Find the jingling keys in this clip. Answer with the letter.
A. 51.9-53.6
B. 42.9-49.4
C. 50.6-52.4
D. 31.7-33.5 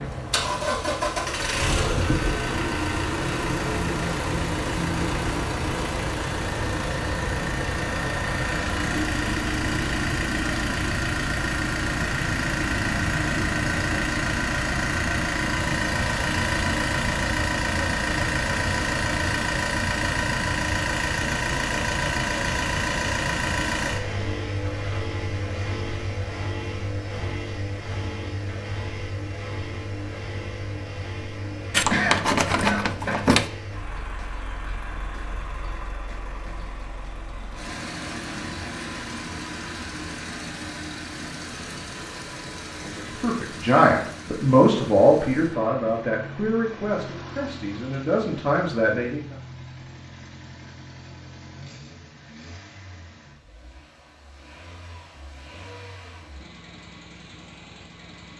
D.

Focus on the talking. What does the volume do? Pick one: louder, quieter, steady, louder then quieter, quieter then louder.
quieter then louder.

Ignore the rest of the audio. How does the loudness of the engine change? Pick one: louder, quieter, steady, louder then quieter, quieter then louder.
quieter.